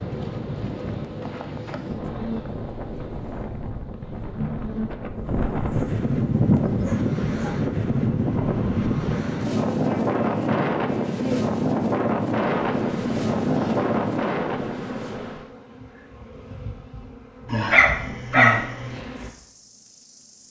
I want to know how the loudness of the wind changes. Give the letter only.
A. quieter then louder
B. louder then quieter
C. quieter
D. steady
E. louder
E.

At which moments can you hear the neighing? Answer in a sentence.
You can't hear the neighing here.